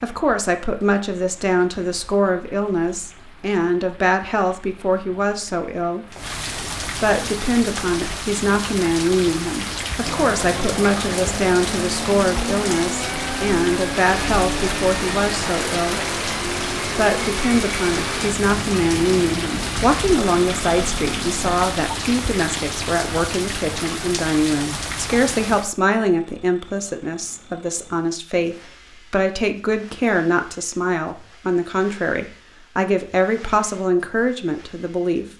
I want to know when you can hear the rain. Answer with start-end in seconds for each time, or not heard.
0.0-25.8.